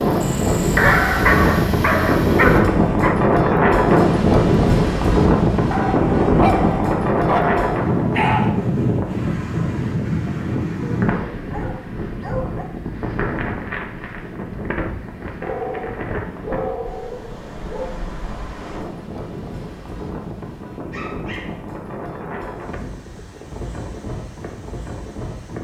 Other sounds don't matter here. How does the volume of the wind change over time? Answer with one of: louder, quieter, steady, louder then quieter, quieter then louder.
quieter.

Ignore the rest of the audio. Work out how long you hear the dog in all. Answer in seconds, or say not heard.
11 s.